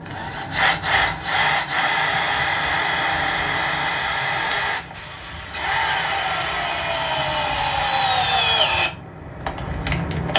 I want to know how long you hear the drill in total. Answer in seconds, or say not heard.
10 s.